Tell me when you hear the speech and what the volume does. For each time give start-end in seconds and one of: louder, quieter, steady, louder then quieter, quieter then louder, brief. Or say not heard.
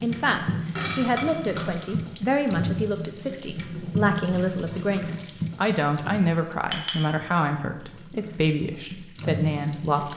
0.0-10.1 steady.